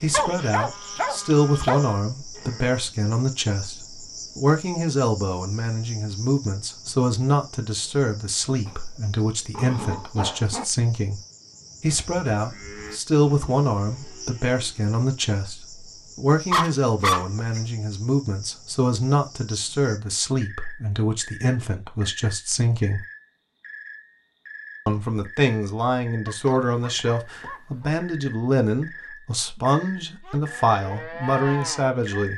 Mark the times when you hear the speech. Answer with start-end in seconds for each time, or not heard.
0.0-11.2, 11.8-23.0, 24.9-32.3.